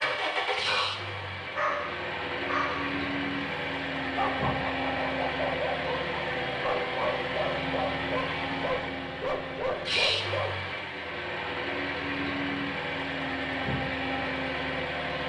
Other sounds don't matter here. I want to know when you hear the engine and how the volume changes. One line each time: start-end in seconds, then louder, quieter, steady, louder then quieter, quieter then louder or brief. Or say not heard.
0.0-15.2 steady.